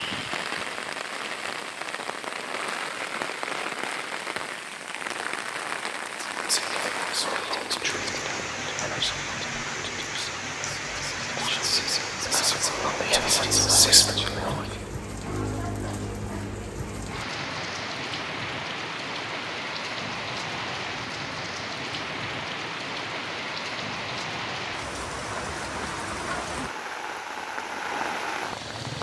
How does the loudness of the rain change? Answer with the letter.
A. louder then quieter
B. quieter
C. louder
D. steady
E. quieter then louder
D.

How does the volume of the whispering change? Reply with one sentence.
The volume of the whispering goes down, then up.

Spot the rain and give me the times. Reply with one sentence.
You can hear the rain from 0.0 to 28.9 s.